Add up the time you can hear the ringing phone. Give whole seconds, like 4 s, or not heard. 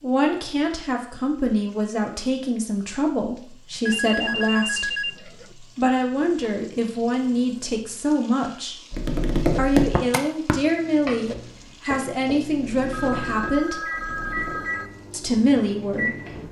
4 s.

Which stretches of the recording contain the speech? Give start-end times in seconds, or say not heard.
0.0-8.8, 9.6-13.8, 15.1-16.4.